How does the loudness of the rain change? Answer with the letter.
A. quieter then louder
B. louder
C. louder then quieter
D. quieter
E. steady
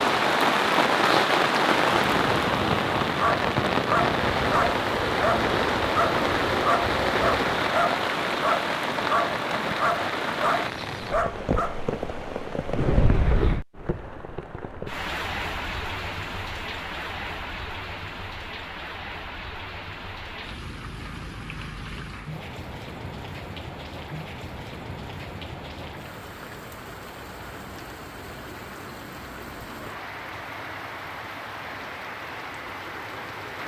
D.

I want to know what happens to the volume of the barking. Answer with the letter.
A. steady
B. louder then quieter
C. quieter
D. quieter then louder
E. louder
A.